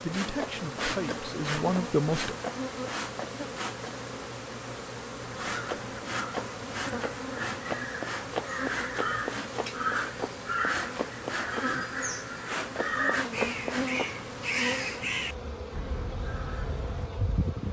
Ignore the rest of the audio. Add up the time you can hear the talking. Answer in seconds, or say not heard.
2 s.